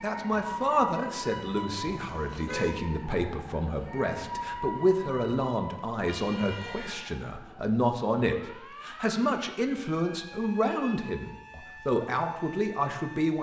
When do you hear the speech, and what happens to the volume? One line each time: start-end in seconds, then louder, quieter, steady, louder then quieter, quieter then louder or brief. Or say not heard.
0.0-13.3 steady.